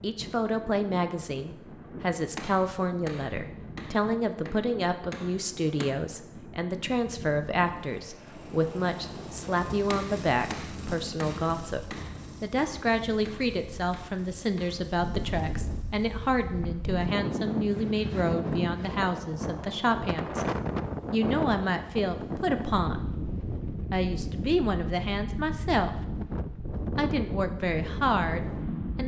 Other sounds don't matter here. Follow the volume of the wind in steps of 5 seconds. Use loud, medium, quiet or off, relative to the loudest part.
medium, medium, quiet, loud, loud, loud.